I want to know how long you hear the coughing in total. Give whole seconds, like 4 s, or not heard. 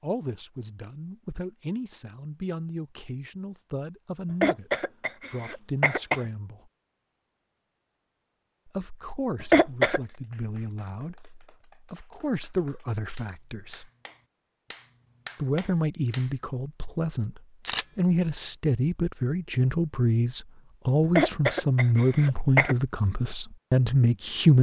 4 s.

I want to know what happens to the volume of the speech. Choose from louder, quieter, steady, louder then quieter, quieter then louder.
louder.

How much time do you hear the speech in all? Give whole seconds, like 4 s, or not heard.
21 s.